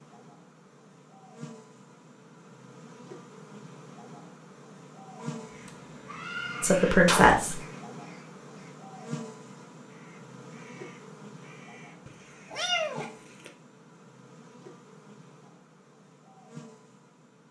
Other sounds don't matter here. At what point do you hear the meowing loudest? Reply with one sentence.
The loudest moment of the meowing is at 13 seconds.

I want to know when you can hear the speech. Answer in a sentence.
You can hear the speech from 6.6 to 7.6 s.